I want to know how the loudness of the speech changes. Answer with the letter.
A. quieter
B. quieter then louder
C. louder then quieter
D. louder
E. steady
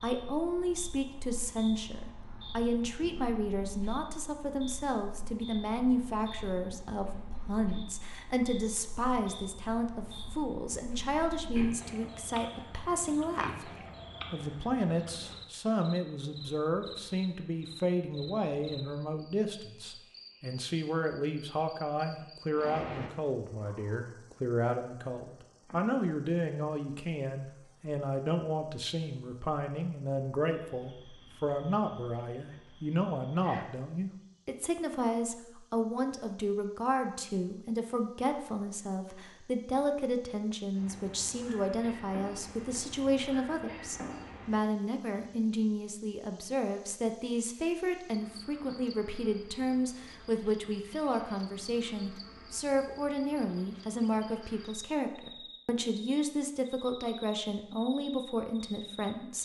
E.